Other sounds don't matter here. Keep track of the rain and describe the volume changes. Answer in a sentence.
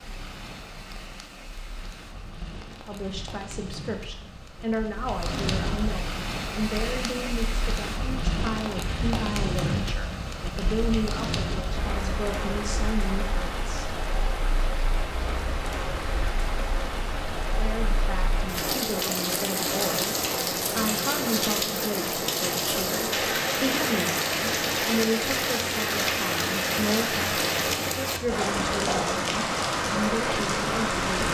The loudness of the rain goes up.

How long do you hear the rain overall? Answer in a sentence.
You can hear the rain for 31 seconds altogether.